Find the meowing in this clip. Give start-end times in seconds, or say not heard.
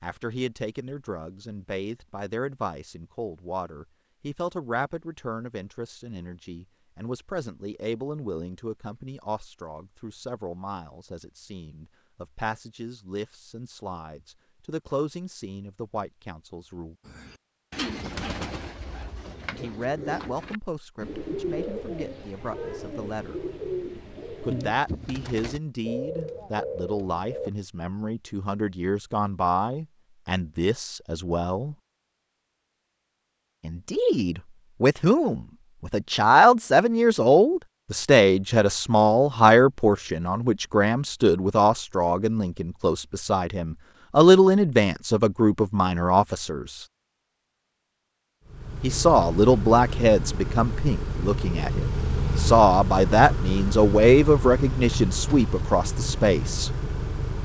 not heard.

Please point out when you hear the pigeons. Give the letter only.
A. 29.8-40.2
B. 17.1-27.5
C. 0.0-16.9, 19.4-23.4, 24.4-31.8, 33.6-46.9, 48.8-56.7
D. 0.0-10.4
B.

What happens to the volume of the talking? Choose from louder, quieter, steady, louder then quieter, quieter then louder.
louder.